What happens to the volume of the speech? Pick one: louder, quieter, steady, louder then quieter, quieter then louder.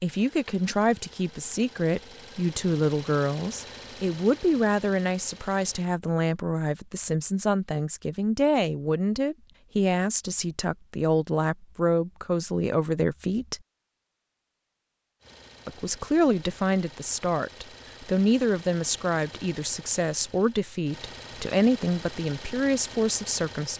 steady.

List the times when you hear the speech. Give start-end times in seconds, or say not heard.
0.0-13.6, 15.7-23.7.